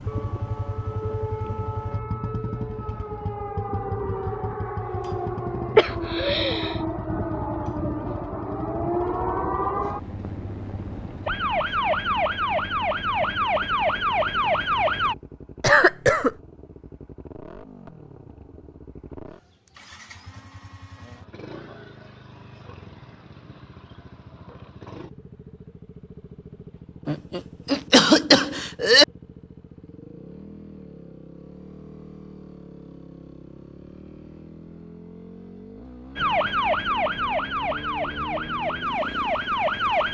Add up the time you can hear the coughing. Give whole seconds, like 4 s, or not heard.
4 s.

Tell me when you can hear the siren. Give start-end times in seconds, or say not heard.
0.0-15.2, 36.1-40.0.